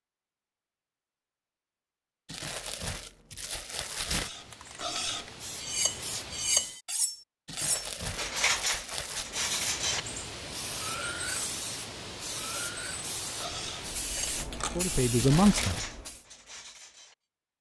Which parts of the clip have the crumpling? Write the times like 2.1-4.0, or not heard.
2.2-4.3, 7.5-9.3, 15.2-15.8.